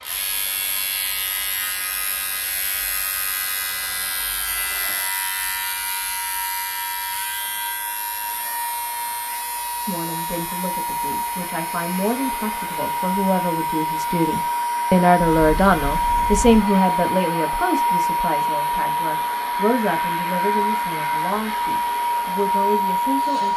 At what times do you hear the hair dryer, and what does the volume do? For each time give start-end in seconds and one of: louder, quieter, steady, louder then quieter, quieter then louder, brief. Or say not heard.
0.0-23.5 louder.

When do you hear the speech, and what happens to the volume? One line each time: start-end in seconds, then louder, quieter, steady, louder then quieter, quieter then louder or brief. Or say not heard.
9.8-23.5 louder then quieter.